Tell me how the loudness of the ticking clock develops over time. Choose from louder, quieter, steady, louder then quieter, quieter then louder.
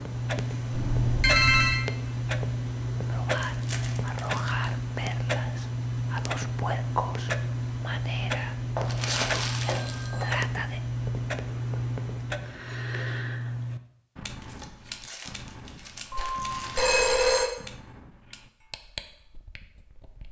quieter.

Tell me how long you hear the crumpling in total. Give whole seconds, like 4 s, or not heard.
5 s.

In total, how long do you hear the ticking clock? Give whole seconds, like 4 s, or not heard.
20 s.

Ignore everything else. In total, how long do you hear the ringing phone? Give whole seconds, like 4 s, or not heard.
4 s.